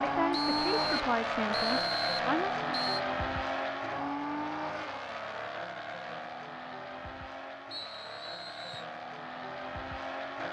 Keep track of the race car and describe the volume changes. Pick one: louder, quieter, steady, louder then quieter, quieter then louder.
quieter.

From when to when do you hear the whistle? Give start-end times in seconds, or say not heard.
0.3-3.0, 7.7-8.8.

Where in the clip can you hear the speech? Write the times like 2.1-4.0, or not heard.
0.0-2.5.